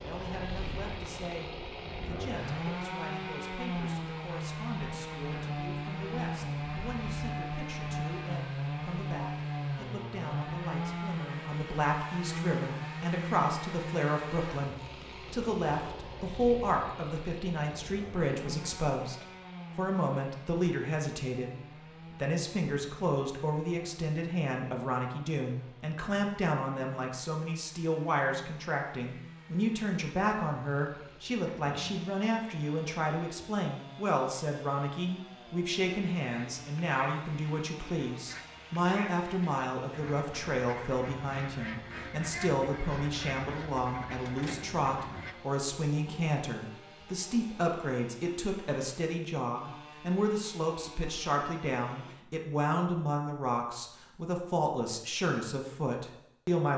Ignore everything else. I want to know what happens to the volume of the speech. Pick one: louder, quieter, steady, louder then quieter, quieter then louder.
louder.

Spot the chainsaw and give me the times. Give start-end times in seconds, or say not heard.
0.0-52.1.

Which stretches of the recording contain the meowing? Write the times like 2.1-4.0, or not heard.
not heard.